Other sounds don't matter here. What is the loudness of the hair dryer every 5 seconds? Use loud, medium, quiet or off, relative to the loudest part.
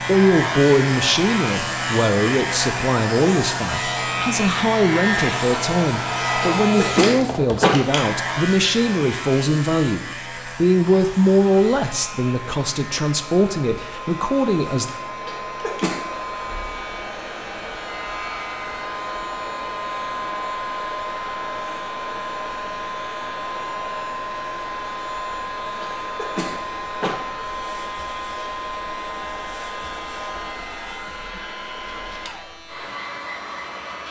loud, loud, medium, loud, loud, loud, medium.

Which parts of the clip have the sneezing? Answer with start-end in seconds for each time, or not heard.
6.4-7.8, 15.2-16.0, 25.8-27.1.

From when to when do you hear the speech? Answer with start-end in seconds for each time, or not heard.
0.1-14.8.